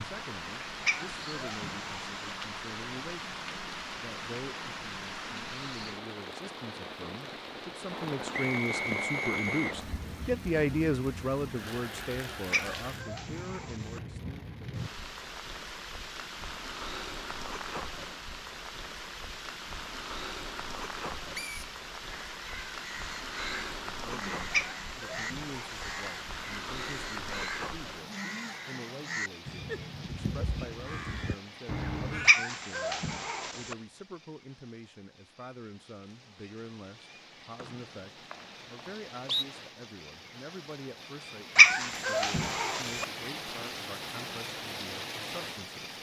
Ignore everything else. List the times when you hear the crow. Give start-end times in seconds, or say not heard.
22.0-32.4.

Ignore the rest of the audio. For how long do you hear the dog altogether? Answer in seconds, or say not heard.
7 s.